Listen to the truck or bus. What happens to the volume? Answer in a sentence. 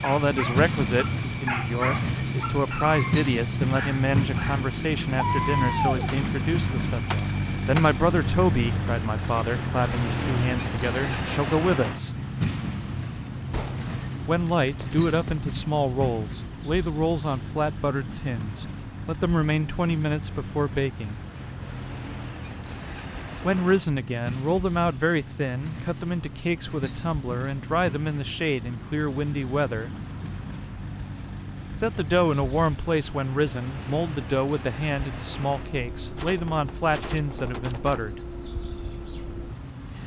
The loudness of the truck or bus goes down.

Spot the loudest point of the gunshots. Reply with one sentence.
The loudest moment of the gunshots is at 6 seconds.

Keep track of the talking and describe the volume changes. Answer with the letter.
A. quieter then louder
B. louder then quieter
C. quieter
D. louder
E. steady
E.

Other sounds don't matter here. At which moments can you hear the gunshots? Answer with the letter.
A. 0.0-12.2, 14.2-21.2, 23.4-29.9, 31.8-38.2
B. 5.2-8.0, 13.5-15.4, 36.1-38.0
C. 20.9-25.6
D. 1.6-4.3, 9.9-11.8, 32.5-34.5
B.